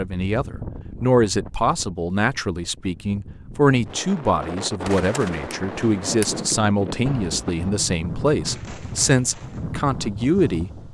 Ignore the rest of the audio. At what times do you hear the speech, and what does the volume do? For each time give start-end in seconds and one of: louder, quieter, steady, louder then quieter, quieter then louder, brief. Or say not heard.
0.0-10.9 steady.